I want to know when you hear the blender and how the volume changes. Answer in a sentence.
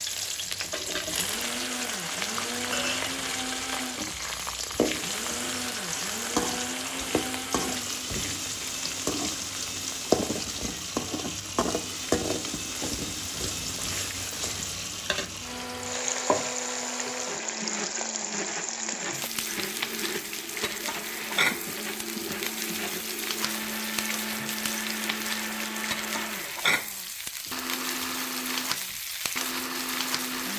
You can hear the blender from 0.1 to 30.5 s, at a steady volume.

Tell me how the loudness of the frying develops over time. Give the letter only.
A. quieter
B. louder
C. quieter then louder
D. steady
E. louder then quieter
D.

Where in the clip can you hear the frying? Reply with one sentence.
The frying can be heard from 0.0 to 30.5 s.